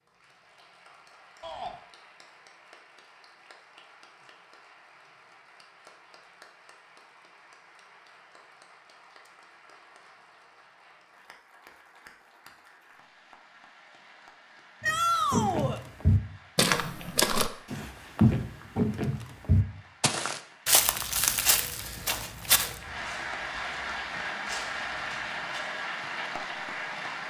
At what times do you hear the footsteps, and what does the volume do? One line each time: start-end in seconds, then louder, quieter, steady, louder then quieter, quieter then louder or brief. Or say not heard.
14.8-25.7 quieter.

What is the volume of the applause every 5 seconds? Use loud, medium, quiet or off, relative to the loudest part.
quiet, quiet, quiet, quiet, loud, loud.